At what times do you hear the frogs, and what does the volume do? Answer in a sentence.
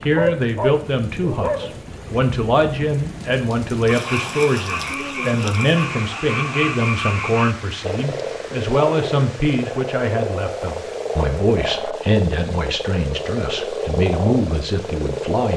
You can hear the frogs from 3.9 to 15.5 s, at a steady volume.